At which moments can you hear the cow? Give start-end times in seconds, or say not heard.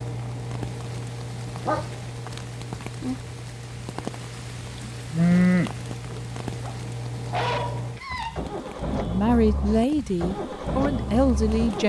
4.8-6.2.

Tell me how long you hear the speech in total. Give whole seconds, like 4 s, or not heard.
3 s.